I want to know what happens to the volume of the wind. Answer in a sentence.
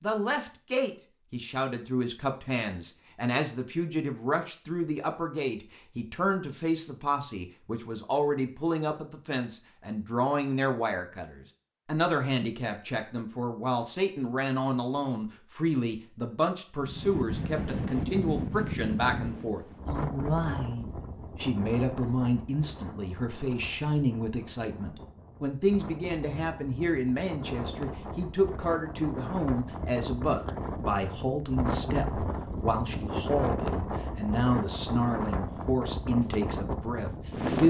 The loudness of the wind goes down, then up.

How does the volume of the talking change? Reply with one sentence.
The volume of the talking stays about the same.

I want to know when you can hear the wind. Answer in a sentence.
You can hear the wind from 16.8 to 37.6 s.